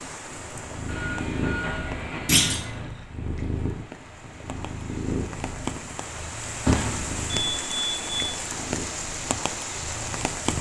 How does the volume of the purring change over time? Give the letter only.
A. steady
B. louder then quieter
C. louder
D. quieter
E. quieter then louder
D.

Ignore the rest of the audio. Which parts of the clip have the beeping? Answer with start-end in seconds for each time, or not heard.
0.8-2.9, 7.5-8.2.